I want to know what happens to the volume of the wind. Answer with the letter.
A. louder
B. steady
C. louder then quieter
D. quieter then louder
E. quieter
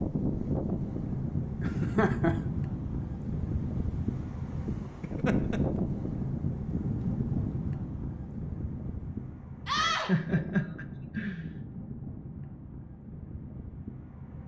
E.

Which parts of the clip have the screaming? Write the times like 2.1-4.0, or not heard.
9.7-10.1.